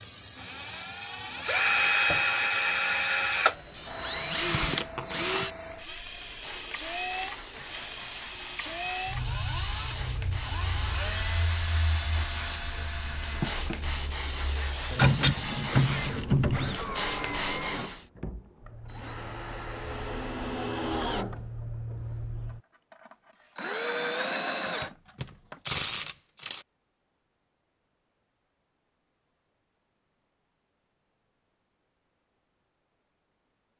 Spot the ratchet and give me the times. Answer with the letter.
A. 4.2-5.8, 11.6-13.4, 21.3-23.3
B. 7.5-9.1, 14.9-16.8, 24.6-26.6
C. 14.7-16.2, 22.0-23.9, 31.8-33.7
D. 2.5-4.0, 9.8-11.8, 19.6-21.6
B.